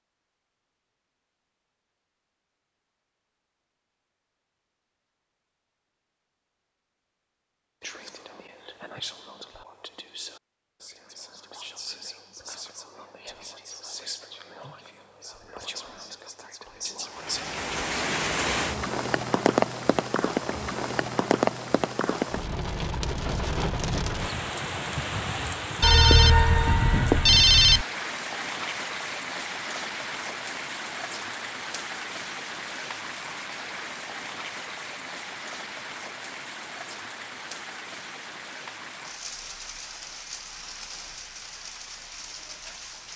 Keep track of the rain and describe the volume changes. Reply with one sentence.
The loudness of the rain goes down.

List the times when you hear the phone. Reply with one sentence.
The phone can be heard from 25.8 to 27.9 s.